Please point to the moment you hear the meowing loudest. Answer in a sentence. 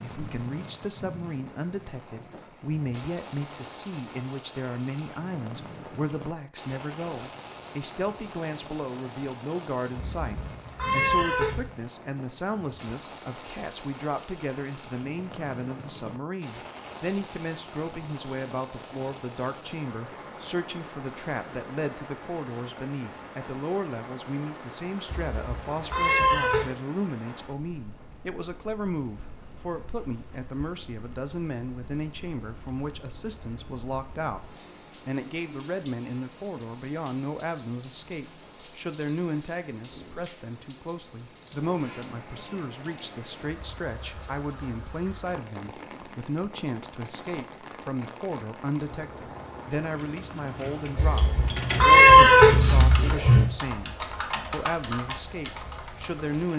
The loudest moment of the meowing is at 52 seconds.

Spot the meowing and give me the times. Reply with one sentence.
The meowing can be heard from 9.9 to 11.6 s, from 25.1 to 26.7 s and from 51.0 to 53.5 s.